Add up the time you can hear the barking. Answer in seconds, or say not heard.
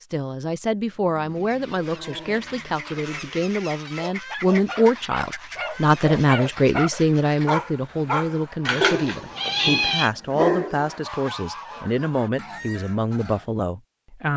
10 s.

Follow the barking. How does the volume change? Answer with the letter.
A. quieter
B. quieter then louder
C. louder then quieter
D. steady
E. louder
E.